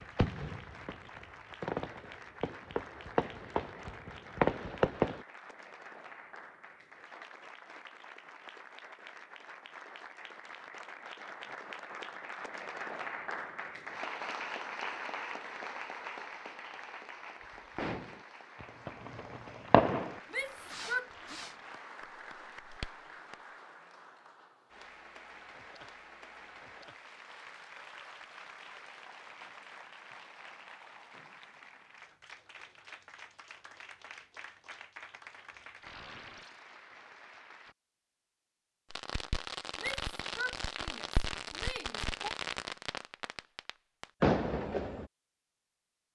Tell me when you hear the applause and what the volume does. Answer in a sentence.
You can hear the applause from 0.0 to 37.8 s, getting louder then quieter.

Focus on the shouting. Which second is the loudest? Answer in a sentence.
The loudest moment of the shouting is at 21 seconds.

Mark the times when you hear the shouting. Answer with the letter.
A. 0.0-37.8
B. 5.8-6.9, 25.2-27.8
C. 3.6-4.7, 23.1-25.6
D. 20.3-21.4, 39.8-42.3
D.